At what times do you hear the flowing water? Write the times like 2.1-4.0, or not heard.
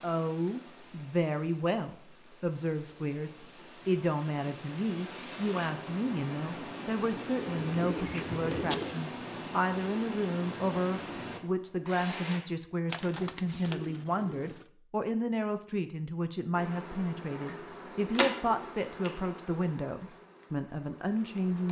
0.0-12.4.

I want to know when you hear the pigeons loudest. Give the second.
9 s.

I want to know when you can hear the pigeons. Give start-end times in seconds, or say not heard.
7.4-9.0, 12.8-14.7.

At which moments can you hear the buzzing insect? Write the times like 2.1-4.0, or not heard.
16.6-21.6.